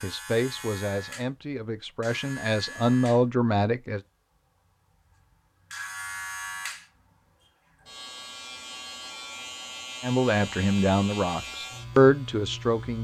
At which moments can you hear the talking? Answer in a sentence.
The talking can be heard from 0.0 to 4.0 s and from 10.0 to 12.9 s.